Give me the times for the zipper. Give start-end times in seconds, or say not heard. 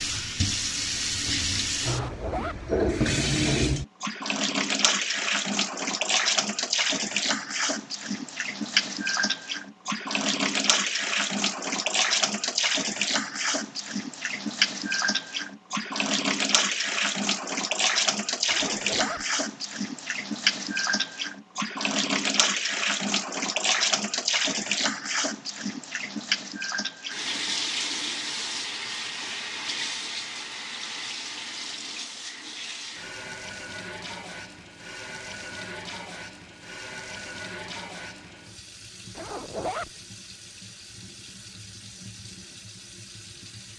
1.8-2.6, 18.4-19.2, 39.1-39.9.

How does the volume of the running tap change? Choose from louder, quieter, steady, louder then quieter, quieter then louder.
quieter.